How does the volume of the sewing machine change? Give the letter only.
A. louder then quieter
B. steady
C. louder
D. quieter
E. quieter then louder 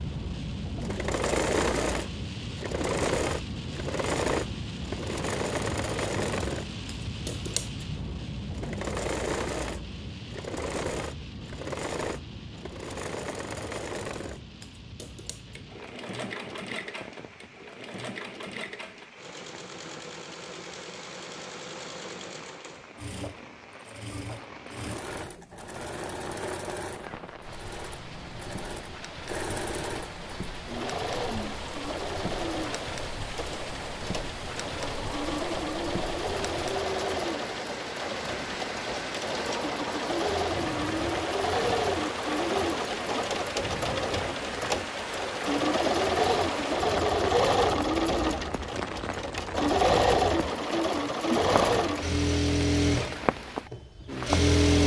E.